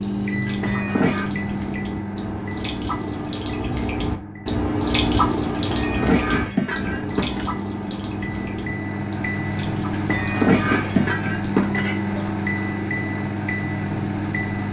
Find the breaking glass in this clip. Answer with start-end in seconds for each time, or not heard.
0.5-1.3, 5.5-7.5, 9.9-11.9.